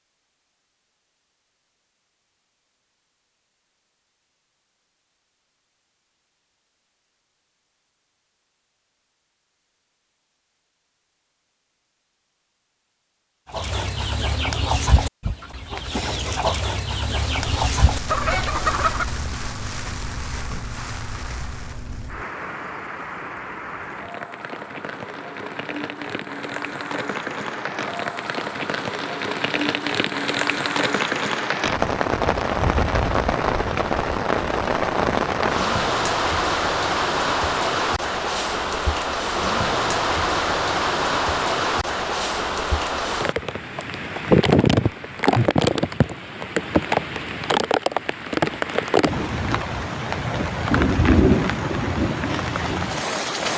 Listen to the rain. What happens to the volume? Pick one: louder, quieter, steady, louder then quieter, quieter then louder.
louder.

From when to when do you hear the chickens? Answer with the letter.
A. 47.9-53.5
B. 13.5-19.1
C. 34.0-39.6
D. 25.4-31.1
B.